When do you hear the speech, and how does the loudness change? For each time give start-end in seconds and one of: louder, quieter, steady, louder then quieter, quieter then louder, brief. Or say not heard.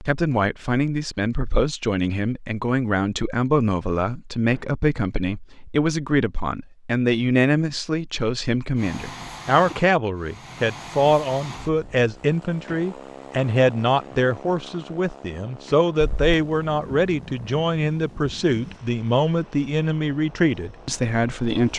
0.0-21.7 steady.